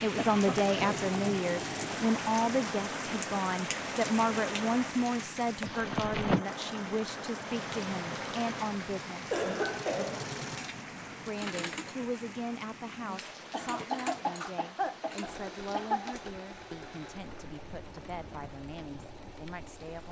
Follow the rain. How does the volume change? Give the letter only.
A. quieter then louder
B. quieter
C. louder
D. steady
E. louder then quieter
B.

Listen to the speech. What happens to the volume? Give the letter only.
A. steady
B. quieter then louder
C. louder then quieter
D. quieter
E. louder
D.